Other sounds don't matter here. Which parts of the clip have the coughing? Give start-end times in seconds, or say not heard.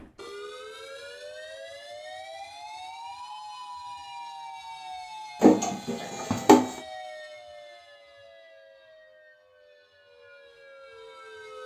5.4-6.7.